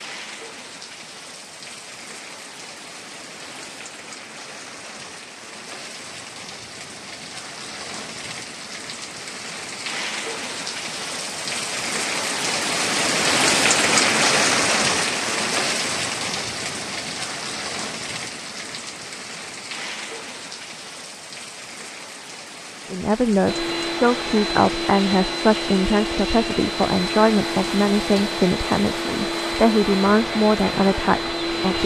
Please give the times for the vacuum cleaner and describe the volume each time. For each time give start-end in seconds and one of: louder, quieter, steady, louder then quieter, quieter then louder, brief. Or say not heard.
23.4-31.8 steady.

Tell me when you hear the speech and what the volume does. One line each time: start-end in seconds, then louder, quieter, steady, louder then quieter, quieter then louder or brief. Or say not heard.
22.9-31.8 steady.